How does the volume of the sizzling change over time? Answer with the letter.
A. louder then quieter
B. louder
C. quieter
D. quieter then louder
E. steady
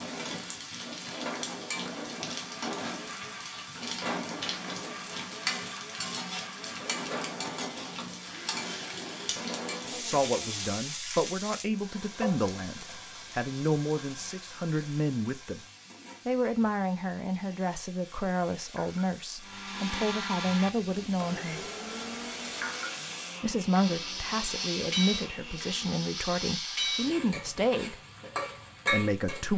D.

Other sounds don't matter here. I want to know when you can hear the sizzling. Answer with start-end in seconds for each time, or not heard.
0.0-29.5.